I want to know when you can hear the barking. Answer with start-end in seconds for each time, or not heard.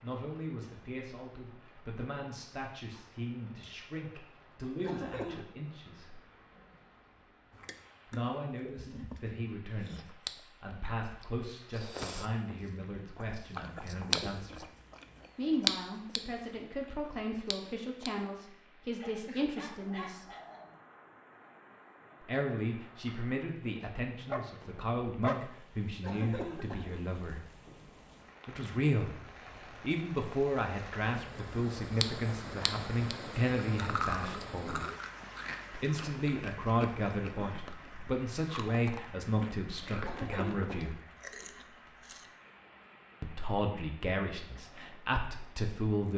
18.9-20.8, 23.8-25.4.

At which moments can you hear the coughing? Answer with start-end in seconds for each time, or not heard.
4.8-5.5, 26.0-27.0, 40.0-41.0.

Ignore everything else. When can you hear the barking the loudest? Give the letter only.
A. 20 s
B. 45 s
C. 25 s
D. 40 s
C.